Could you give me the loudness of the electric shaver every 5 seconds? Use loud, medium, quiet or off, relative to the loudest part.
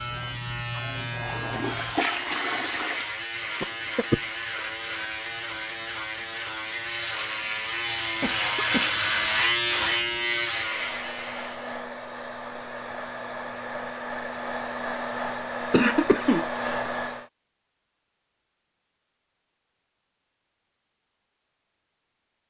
medium, loud, loud, off, off.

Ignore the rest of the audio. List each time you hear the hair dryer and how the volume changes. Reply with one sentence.
You can hear the hair dryer from 10.6 to 17.3 s, getting louder.